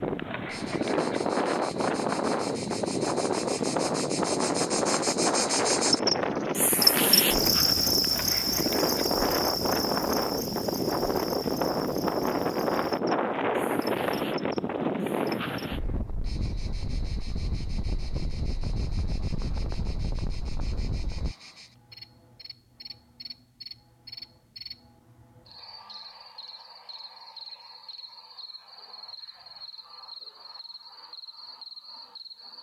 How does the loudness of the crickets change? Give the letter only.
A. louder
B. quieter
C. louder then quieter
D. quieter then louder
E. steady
B.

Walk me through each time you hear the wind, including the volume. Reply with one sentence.
The wind can be heard from 0.0 to 21.4 s, getting quieter.